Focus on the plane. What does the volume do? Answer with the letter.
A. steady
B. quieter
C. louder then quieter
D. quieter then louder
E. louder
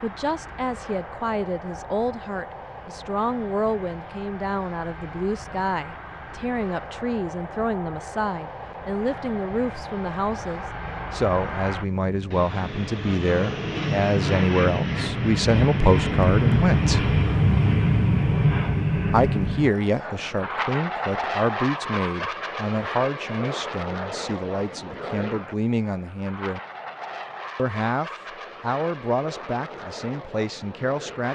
C.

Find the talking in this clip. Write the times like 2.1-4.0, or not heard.
0.0-17.1, 19.1-26.6, 27.6-31.2.